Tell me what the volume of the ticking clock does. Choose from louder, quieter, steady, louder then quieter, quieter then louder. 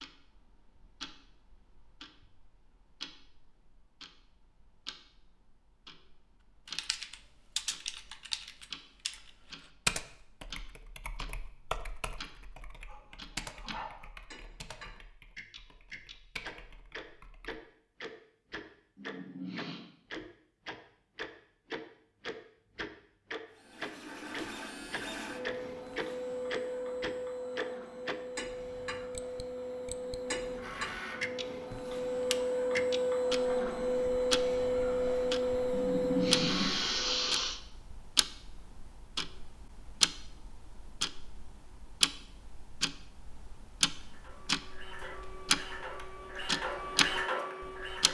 louder.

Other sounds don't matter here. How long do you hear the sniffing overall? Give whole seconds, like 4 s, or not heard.
4 s.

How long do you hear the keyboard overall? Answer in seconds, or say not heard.
11 s.